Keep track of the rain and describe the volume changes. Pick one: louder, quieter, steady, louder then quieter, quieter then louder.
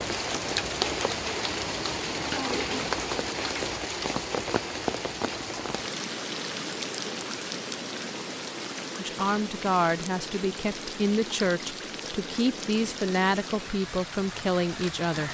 quieter.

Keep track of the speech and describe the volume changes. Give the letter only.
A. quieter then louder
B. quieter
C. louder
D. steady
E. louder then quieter
D.